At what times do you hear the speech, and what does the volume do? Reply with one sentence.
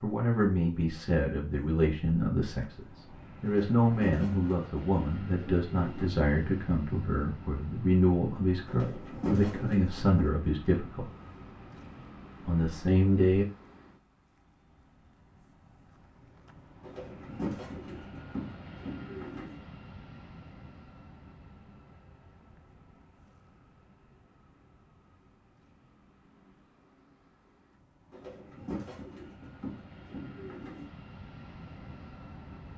The speech can be heard from 0.0 to 11.1 s, at a steady volume; and briefly from 12.4 to 13.4 s.